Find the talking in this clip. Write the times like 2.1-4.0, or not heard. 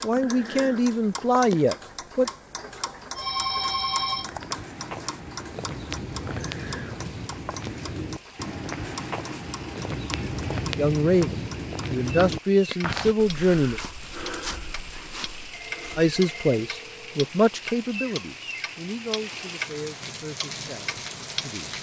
0.0-2.3, 10.8-13.8, 15.9-21.7.